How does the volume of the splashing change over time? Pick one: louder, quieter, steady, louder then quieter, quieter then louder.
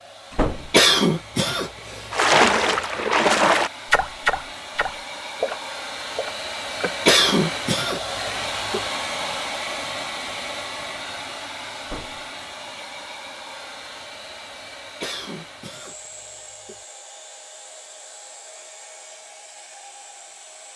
quieter.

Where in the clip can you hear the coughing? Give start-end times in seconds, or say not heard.
0.7-2.5, 7.0-8.8, 15.0-16.8.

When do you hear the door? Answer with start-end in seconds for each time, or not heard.
0.3-0.8, 11.8-12.2.